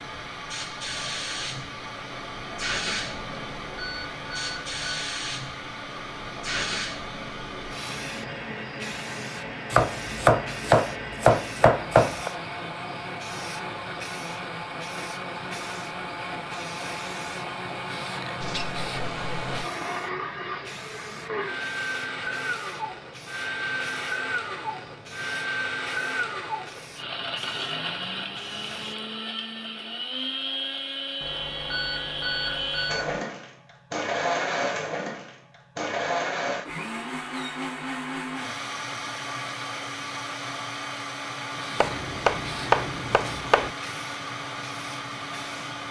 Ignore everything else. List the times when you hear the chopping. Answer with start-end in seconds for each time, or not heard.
9.7-12.3, 41.8-43.7.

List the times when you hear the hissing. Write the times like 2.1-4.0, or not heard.
0.0-28.9, 41.5-45.8.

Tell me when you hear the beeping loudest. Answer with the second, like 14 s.
32 s.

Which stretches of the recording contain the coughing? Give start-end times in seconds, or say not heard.
not heard.